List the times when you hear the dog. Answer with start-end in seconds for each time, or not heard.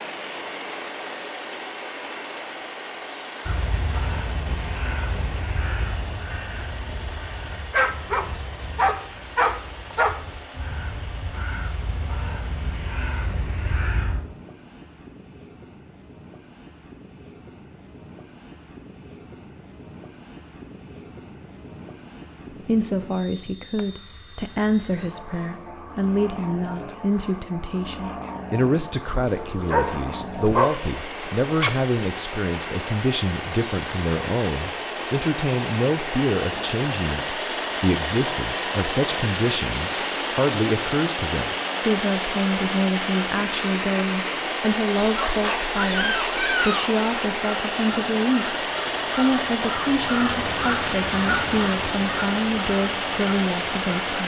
7.7-10.2, 29.2-32.0, 45.1-47.0.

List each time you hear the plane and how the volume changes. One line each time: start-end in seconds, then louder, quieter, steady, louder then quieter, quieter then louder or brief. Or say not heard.
0.0-54.2 quieter then louder.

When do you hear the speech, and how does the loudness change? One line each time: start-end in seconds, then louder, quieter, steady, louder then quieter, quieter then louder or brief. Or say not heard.
22.6-54.2 steady.